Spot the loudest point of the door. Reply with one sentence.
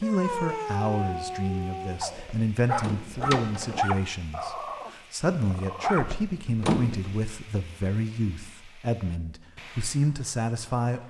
The loudest moment of the door is at 7 seconds.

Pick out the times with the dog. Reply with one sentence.
You can hear the dog from 0.0 to 6.2 s.